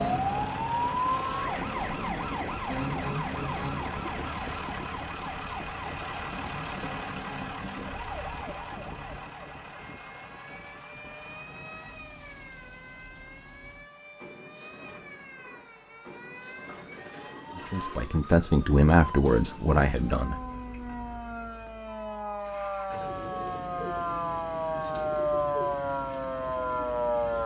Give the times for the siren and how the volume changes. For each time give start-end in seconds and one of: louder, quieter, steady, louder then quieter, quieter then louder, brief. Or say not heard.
0.0-27.4 quieter then louder.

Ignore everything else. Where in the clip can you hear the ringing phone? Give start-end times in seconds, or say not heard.
16.6-18.1.